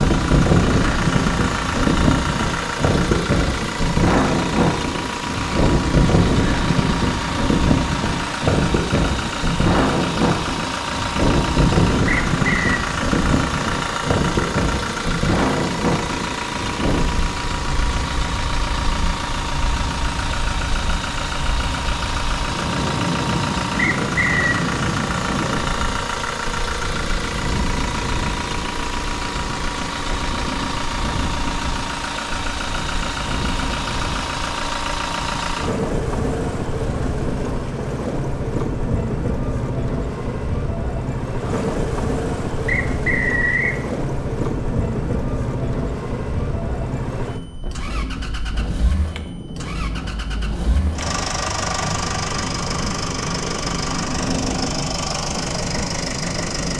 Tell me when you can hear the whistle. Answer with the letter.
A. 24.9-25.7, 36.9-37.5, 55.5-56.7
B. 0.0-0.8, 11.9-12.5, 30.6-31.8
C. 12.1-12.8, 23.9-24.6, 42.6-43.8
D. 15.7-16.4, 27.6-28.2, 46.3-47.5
C.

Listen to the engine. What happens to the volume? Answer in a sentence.
The loudness of the engine stays about the same.